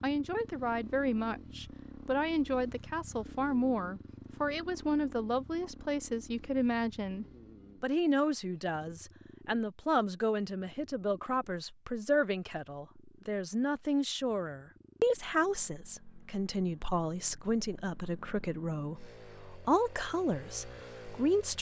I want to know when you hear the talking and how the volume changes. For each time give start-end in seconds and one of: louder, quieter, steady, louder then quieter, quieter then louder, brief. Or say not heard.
0.0-21.5 steady.